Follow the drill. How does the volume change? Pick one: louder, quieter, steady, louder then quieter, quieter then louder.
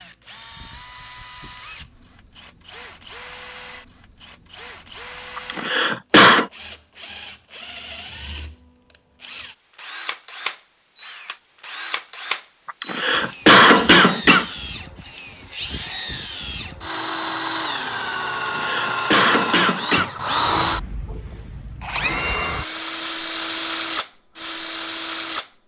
louder.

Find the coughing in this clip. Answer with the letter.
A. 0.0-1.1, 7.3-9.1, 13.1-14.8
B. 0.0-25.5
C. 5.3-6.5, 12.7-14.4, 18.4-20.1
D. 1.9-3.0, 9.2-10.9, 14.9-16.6
C.